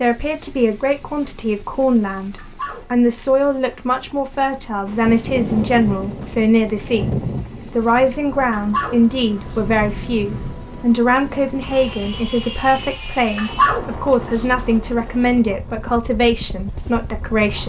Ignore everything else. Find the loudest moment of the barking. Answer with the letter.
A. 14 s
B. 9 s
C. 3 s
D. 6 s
A.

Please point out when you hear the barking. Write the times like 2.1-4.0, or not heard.
2.4-4.0, 8.5-10.1, 13.3-14.4.